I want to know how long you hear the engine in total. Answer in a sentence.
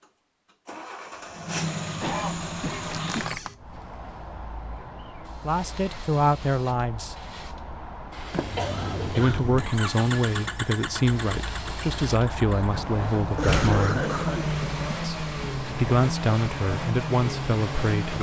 You can hear the engine for 13 seconds altogether.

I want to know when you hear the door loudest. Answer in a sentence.
The loudest moment of the door is at 14 seconds.